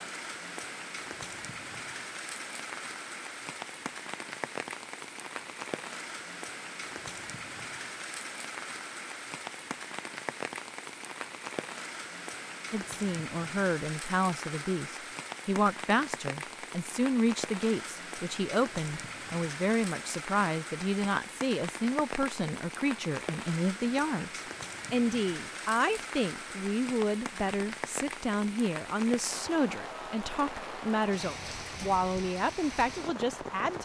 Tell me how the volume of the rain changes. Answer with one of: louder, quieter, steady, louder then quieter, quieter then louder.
steady.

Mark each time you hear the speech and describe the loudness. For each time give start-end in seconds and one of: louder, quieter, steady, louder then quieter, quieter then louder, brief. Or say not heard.
12.7-33.8 steady.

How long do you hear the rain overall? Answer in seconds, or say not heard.
34 s.